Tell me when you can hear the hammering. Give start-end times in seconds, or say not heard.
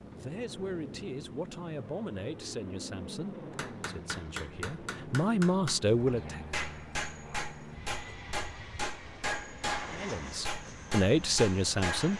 3.5-12.1.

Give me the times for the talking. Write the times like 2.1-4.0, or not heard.
0.1-6.4, 9.9-12.1.